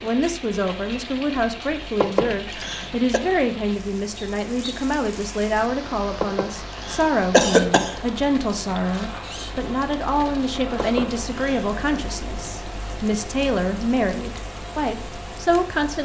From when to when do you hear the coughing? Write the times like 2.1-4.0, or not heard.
2.0-3.2, 6.2-8.0, 10.8-11.7.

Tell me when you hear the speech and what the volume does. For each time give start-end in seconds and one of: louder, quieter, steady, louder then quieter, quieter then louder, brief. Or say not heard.
0.0-15.9 steady.